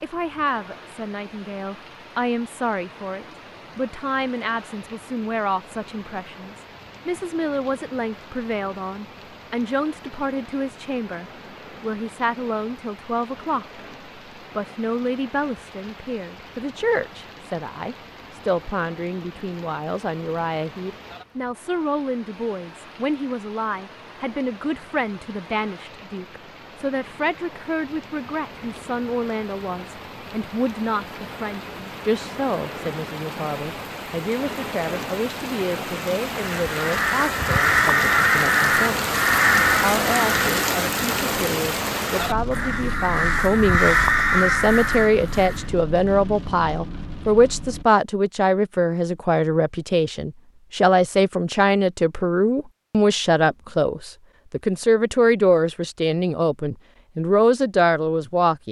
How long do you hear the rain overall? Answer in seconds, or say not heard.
48 s.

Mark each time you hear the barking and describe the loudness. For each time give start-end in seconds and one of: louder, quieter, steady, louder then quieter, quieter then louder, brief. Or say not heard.
not heard.